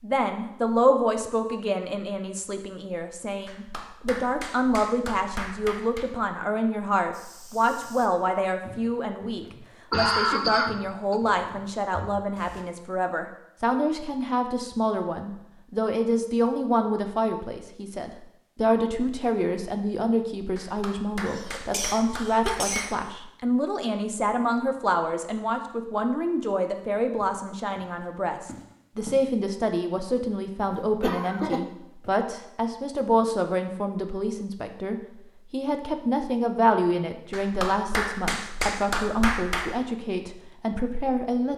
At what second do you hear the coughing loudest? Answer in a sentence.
The volume of the coughing peaks at 10 seconds.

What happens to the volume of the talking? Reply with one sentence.
The loudness of the talking stays about the same.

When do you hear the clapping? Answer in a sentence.
You can hear the clapping from 3.5 to 6.0 s, from 20.6 to 23.0 s and from 37.3 to 39.8 s.